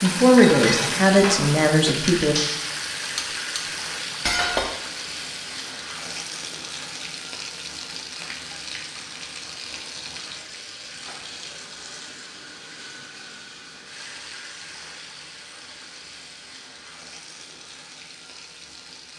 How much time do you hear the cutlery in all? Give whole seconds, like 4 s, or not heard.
5 s.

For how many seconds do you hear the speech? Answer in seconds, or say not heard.
2 s.